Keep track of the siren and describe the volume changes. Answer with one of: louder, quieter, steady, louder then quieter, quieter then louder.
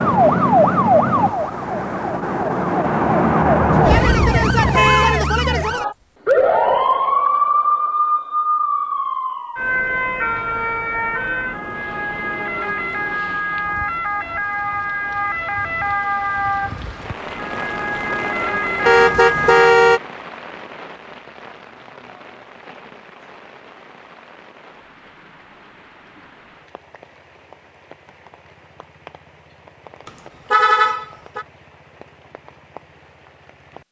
quieter.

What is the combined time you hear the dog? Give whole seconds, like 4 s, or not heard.
not heard.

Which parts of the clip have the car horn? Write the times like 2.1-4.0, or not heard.
3.7-5.2, 18.9-20.0, 30.1-31.4.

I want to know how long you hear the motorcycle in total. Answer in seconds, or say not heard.
not heard.